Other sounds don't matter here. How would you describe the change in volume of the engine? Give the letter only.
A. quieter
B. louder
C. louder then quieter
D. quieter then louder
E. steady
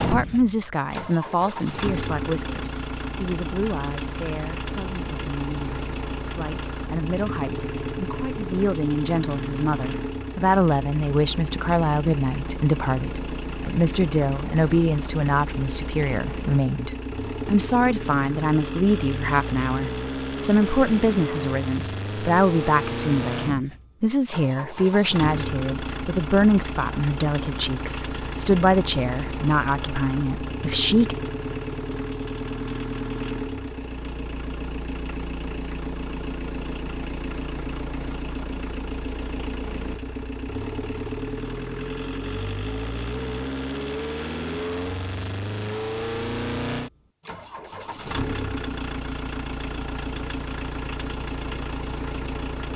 E.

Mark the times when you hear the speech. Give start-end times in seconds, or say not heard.
0.0-31.1.